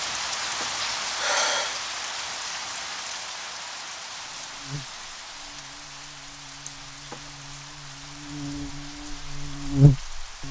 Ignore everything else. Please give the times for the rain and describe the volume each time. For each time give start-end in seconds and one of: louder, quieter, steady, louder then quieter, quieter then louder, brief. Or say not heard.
0.0-10.4 quieter.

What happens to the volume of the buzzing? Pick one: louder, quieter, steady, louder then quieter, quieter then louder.
louder.